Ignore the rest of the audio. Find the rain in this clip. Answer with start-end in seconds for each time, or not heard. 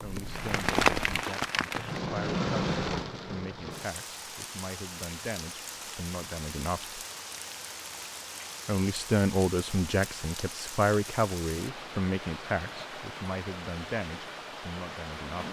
0.0-15.4.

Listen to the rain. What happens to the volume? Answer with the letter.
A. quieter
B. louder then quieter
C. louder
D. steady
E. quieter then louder
A.